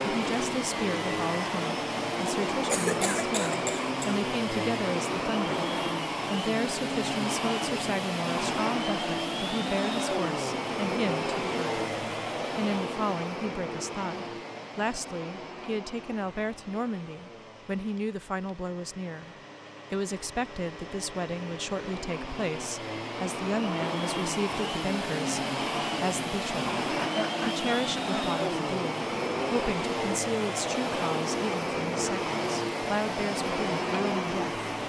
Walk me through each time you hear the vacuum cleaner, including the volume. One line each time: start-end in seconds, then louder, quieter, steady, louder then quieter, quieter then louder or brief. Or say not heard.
0.0-34.8 quieter then louder.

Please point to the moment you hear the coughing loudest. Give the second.
3 s.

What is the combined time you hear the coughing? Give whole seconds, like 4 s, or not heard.
3 s.